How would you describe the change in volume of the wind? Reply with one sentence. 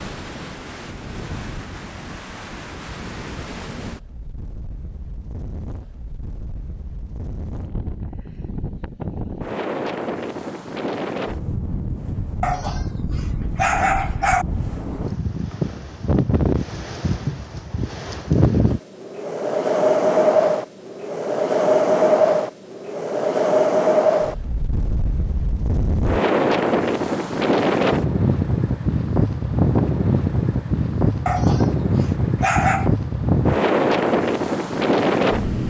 The loudness of the wind goes up.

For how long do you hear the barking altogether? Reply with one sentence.
You can hear the barking for 4 seconds altogether.